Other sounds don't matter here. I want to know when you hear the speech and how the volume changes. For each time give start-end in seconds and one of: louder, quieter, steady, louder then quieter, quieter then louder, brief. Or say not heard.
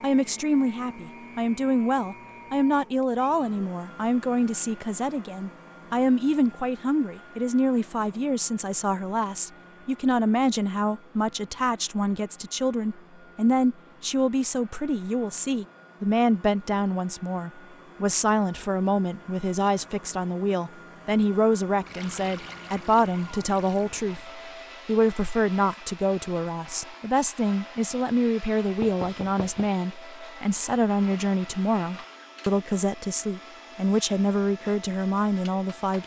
0.0-36.0 steady.